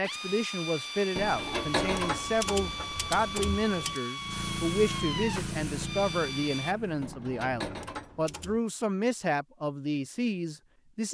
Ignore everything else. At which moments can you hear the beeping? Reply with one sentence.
The beeping can't be heard in this clip.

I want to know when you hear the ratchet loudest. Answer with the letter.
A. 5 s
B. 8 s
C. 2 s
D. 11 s
C.